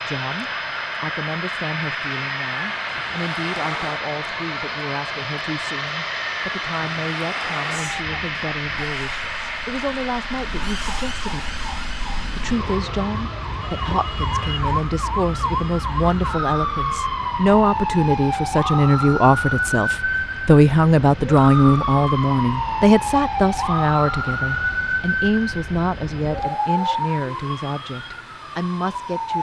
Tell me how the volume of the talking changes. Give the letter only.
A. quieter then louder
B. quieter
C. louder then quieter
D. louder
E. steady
C.